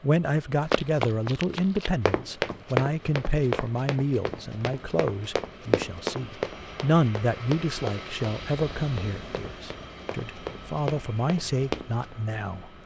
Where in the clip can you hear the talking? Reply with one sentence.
The talking can be heard from 0.0 to 12.7 s.